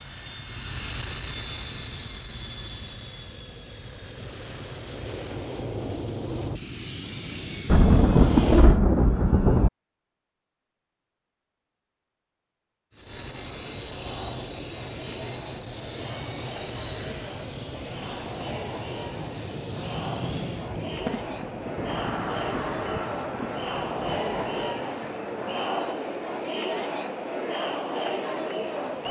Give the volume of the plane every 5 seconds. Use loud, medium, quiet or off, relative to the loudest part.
loud, loud, loud, loud, loud, quiet.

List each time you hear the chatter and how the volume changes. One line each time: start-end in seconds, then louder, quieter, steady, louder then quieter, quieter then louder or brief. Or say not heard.
13.0-29.0 louder.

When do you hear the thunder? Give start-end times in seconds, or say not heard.
7.7-9.7, 20.9-24.7.